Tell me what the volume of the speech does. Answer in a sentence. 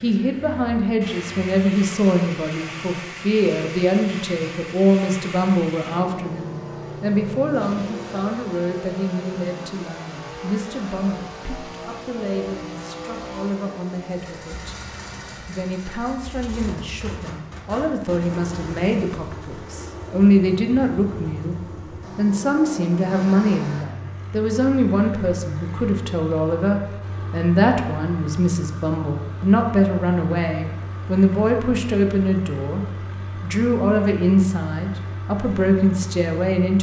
The volume of the speech goes down, then up.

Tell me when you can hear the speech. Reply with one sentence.
The speech can be heard from 0.0 to 36.7 s.